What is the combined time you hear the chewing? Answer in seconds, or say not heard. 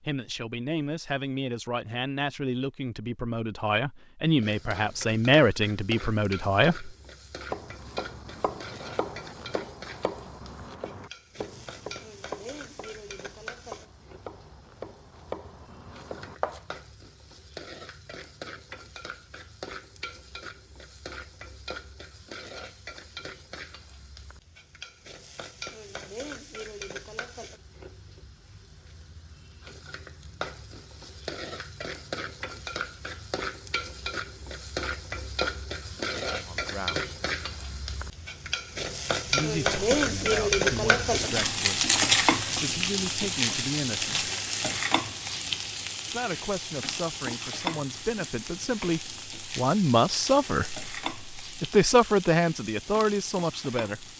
not heard.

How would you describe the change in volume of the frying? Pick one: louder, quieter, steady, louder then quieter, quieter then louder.
louder then quieter.